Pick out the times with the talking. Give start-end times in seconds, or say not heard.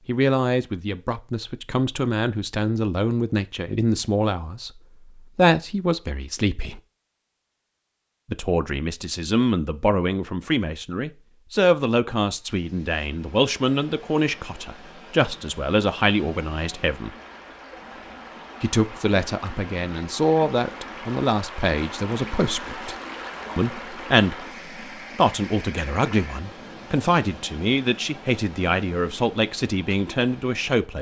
0.1-6.8, 8.3-17.1, 18.6-22.9, 23.6-24.4, 25.1-30.9.